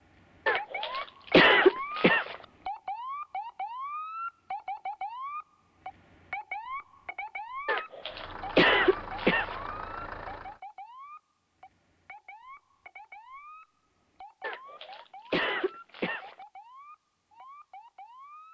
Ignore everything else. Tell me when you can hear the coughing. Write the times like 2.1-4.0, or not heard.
0.5-2.4, 7.7-9.6, 14.4-16.4.